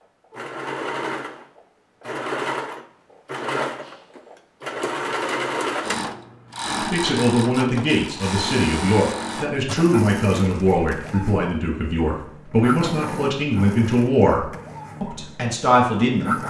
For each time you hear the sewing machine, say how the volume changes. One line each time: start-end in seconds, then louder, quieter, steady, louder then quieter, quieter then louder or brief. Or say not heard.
0.3-16.4 quieter.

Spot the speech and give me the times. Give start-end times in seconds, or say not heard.
6.8-16.4.